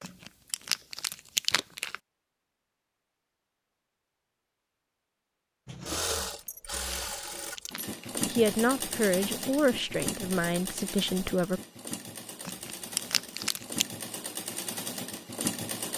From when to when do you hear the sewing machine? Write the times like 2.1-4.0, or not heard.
5.7-15.9.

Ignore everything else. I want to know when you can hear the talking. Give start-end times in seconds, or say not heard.
8.2-11.6.